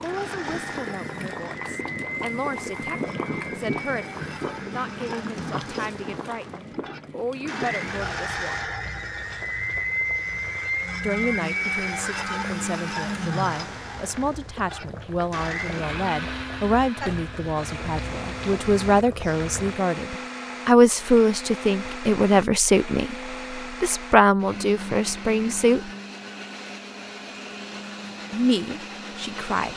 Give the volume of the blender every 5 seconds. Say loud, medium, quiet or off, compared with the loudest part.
medium, loud, loud, medium, medium, medium.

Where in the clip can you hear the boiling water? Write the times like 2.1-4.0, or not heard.
0.0-19.8.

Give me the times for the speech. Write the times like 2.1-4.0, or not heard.
0.0-8.6, 11.0-25.9, 28.3-29.7.